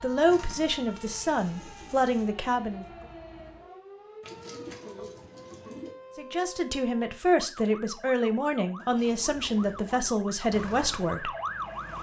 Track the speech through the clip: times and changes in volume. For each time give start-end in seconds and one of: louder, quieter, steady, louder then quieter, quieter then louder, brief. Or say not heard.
0.0-2.9 brief
6.2-11.3 steady.